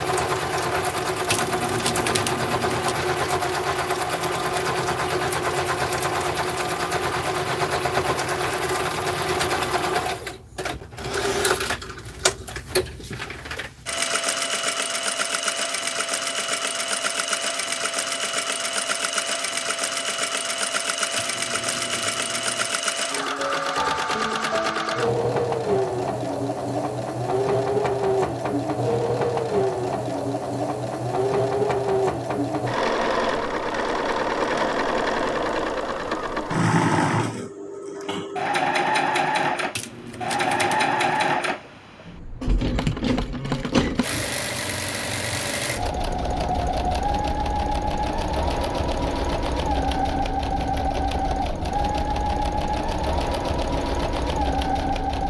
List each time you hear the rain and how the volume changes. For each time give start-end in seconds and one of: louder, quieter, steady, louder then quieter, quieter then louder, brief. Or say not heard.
not heard.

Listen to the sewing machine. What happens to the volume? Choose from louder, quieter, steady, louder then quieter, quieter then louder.
steady.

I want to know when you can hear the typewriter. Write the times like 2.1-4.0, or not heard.
1.3-3.0, 21.1-22.8, 39.8-41.3.